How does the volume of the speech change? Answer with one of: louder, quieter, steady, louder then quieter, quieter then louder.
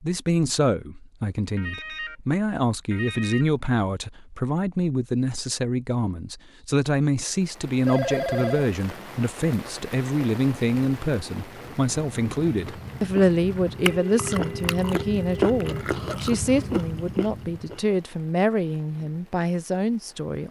steady.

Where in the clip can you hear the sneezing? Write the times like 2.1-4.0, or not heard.
not heard.